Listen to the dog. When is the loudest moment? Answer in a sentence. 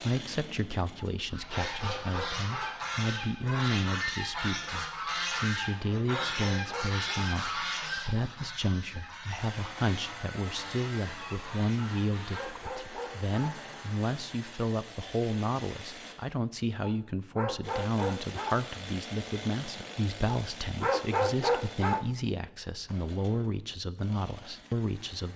The loudest moment of the dog is at 21 seconds.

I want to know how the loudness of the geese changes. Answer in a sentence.
The loudness of the geese goes down.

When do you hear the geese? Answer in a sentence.
The geese can be heard from 1.3 to 12.7 s.